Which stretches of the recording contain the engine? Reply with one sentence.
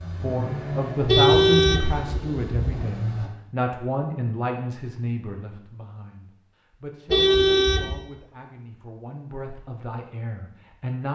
You can hear the engine from 0.0 to 3.3 s.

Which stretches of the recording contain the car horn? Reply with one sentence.
The car horn can be heard from 1.1 to 2.9 s and from 7.1 to 8.0 s.